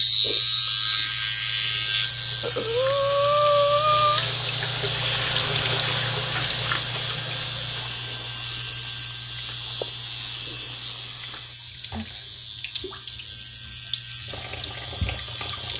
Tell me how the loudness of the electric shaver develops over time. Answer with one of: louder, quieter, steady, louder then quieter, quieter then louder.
quieter.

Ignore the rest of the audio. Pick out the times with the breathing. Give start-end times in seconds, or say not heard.
2.4-4.3.